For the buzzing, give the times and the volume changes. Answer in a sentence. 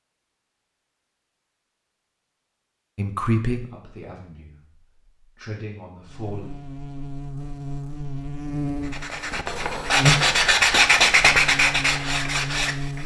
You can hear the buzzing from 6.0 to 13.0 s, getting louder then quieter.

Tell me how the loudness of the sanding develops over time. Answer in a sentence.
The volume of the sanding goes up, then down.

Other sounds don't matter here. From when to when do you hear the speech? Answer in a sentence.
You can hear the speech from 3.0 to 6.5 s.